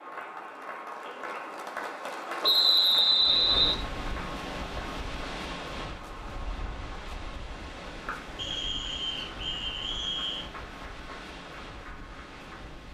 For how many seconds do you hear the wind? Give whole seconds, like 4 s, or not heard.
10 s.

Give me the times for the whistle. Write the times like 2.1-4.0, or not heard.
2.4-3.8, 8.3-10.5.